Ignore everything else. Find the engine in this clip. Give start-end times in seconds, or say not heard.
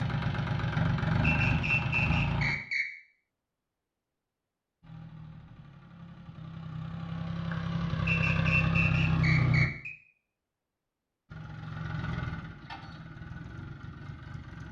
0.0-2.5, 4.8-9.7, 11.2-14.6.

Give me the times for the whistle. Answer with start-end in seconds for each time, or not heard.
1.2-2.9, 8.1-9.9.